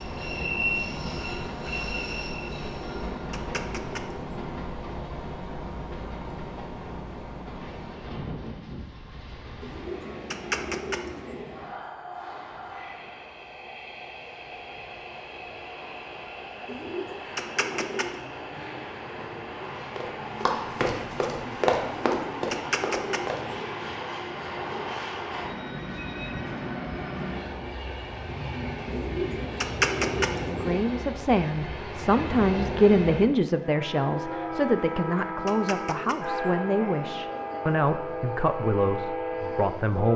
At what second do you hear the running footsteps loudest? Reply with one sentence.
The loudest moment of the running footsteps is at 22 seconds.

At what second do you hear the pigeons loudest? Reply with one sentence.
The loudest moment of the pigeons is at 30 seconds.